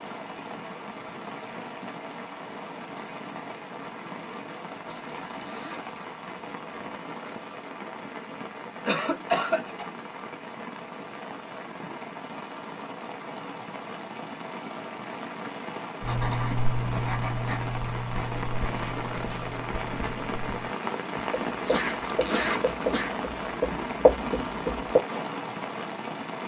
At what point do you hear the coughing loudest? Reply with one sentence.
The loudest moment of the coughing is at 9 seconds.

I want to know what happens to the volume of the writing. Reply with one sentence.
The loudness of the writing goes down, then up.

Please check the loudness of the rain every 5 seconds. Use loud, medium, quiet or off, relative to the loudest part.
medium, medium, medium, loud, loud, loud.